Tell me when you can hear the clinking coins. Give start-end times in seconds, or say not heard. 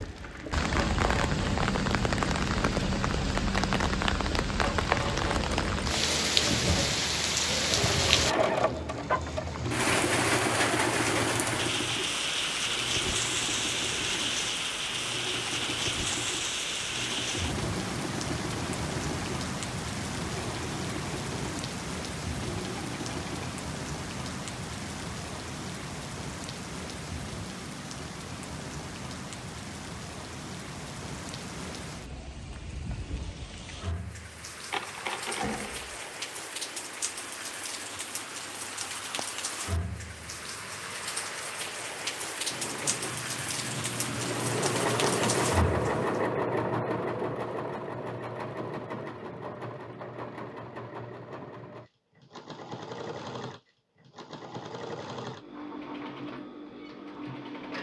34.6-36.1.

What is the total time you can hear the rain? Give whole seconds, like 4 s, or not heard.
46 s.